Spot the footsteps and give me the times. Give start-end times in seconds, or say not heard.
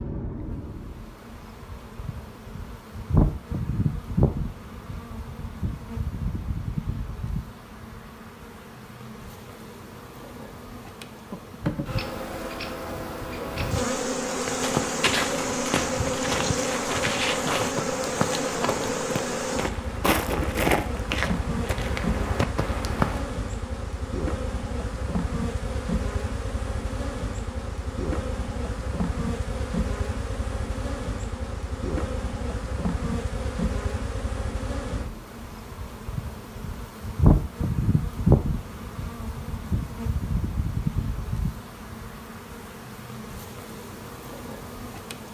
14.4-23.3.